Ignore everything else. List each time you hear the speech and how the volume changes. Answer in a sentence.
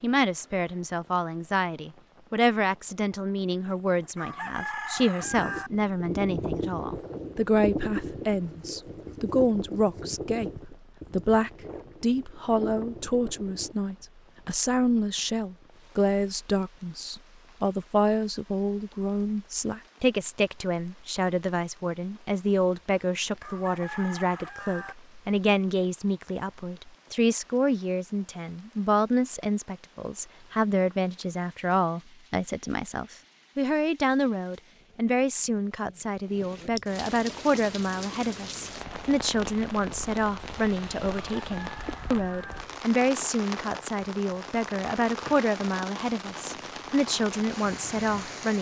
You can hear the speech from 0.0 to 48.5 s, at a steady volume.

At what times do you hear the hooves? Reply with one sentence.
The hooves can be heard from 5.2 to 13.8 s.